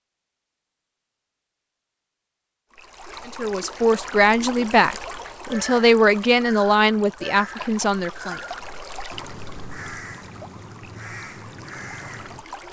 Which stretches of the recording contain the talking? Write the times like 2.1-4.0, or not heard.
3.2-8.4.